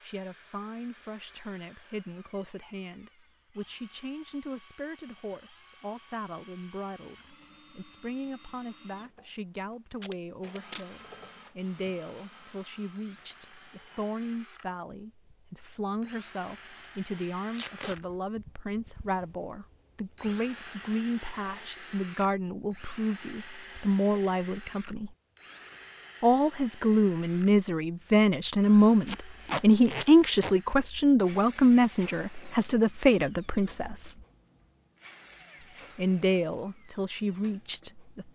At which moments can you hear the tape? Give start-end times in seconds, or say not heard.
9.9-10.8, 17.5-18.0, 29.1-30.6.